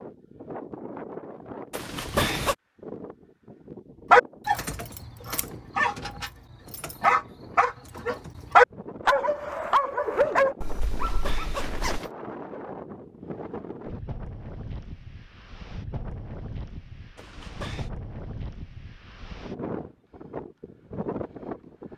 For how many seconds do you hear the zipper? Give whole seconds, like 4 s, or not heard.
3 s.